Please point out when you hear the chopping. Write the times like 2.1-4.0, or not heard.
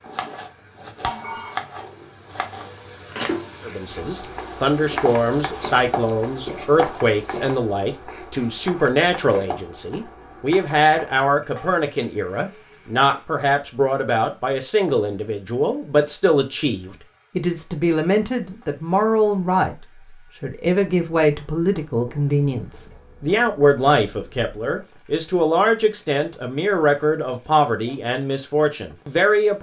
0.0-4.0, 4.8-8.5, 9.2-9.6.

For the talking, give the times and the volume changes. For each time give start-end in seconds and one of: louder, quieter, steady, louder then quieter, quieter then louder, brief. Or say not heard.
3.6-19.8 steady
20.4-29.5 steady.